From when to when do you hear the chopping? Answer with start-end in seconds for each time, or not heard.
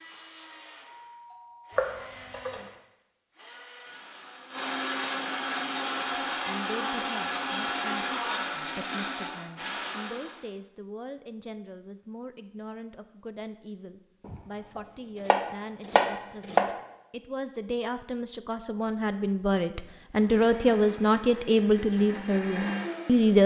1.7-2.6, 14.2-16.8.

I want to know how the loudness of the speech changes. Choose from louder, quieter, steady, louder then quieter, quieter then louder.
louder.